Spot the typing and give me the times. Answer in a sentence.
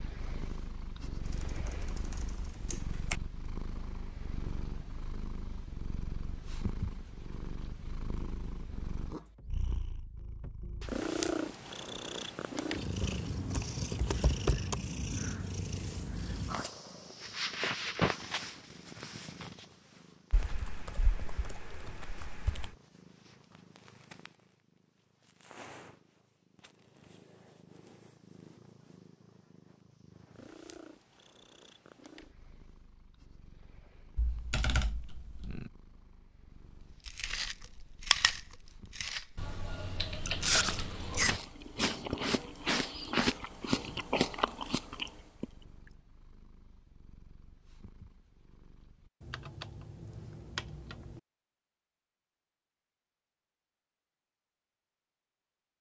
The typing can be heard from 1.2 to 3.2 s, from 13.0 to 14.8 s, from 20.3 to 22.8 s, from 34.1 to 35.7 s, from 39.4 to 41.4 s and from 49.2 to 51.2 s.